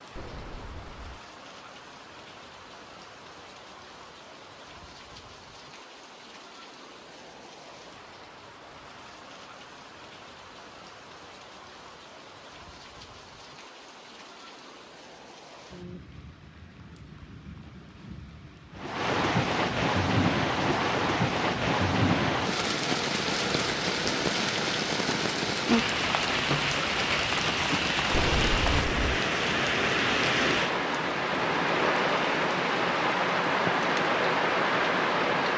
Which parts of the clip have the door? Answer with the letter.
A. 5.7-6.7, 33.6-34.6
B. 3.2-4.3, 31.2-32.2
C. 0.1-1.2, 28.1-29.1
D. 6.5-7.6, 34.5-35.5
C.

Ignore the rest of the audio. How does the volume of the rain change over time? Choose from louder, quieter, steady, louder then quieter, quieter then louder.
louder.